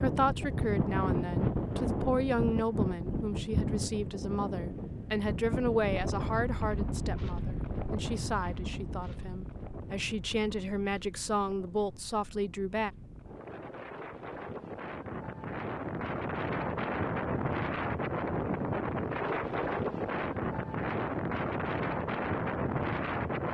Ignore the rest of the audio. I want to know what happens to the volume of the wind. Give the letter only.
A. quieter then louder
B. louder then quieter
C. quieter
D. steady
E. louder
A.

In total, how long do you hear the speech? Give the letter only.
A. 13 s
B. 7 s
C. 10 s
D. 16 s
A.